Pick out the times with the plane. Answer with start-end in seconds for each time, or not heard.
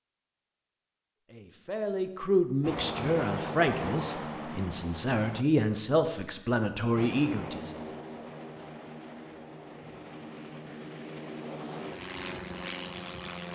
2.6-5.5, 7.0-13.5.